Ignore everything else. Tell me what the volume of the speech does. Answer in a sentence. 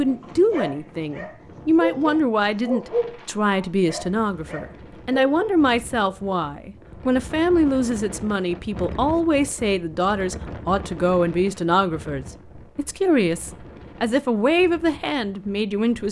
The loudness of the speech stays about the same.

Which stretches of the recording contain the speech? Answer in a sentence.
The speech can be heard from 0.0 to 16.0 s.